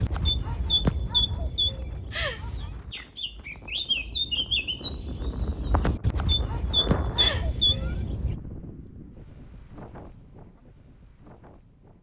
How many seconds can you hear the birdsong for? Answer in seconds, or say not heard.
8 s.